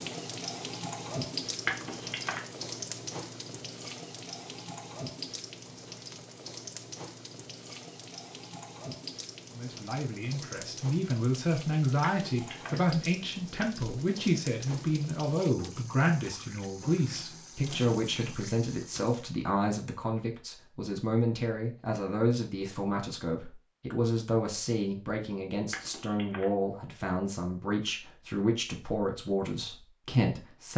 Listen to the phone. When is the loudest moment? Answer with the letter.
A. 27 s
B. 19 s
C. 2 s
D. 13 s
C.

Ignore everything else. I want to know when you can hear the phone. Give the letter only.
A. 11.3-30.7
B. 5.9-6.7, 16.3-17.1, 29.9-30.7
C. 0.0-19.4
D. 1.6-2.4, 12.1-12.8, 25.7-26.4
D.